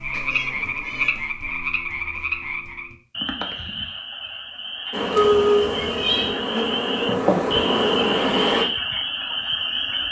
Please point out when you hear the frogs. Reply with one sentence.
You can hear the frogs from 0.0 to 10.0 s.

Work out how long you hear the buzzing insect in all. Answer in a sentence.
You can hear the buzzing insect for 4 seconds altogether.